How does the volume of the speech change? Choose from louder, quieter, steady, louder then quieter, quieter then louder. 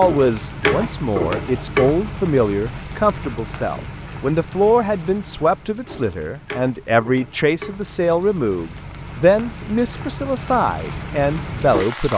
steady.